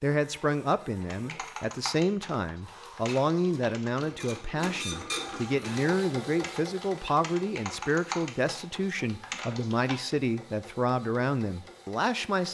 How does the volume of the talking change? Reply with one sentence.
The volume of the talking stays about the same.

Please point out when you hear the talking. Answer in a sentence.
The talking can be heard from 0.0 to 12.4 s.